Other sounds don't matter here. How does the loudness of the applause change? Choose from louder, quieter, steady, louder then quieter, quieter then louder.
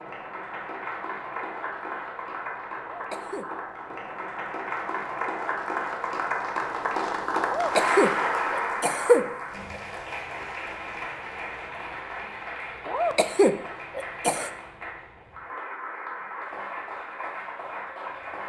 louder then quieter.